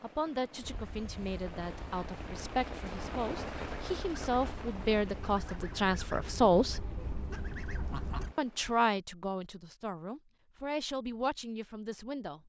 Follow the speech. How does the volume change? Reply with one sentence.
The loudness of the speech goes up, then down.